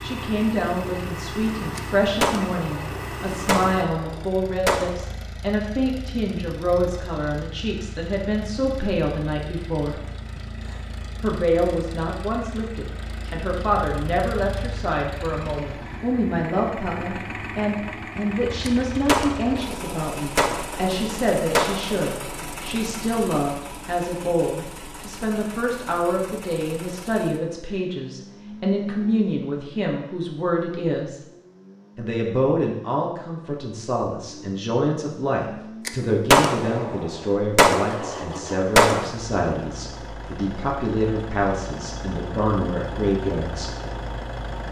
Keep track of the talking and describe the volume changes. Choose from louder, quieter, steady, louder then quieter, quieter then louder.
steady.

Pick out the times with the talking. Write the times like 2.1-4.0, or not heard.
0.0-9.9, 11.2-31.2, 31.9-43.7.